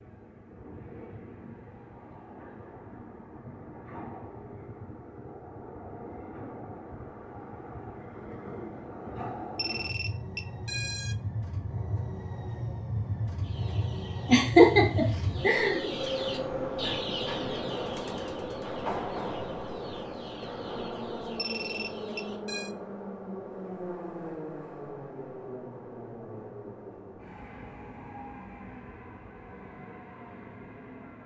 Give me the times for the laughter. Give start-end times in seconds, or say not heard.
14.2-15.8.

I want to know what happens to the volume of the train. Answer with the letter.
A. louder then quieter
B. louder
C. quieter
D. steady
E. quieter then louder
A.